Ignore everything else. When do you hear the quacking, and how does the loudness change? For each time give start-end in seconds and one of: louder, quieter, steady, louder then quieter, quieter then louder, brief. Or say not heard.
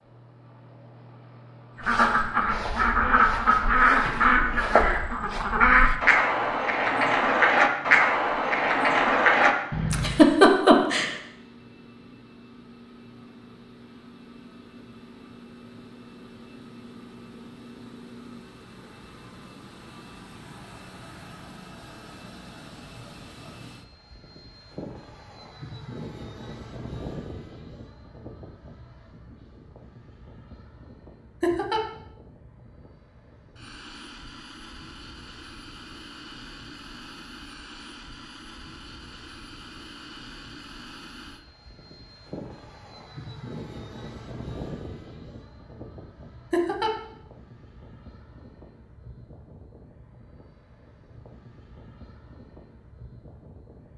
1.8-10.2 steady.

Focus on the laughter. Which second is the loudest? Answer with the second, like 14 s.
10 s.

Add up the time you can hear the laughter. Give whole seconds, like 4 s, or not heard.
2 s.